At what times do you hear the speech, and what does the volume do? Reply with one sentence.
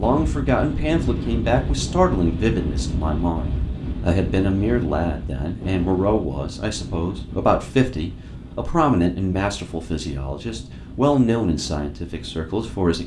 You can hear the speech from 0.0 to 13.0 s, at a steady volume.